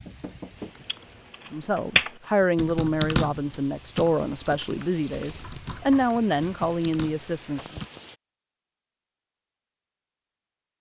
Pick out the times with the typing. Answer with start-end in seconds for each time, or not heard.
0.8-7.8.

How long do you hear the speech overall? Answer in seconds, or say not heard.
6 s.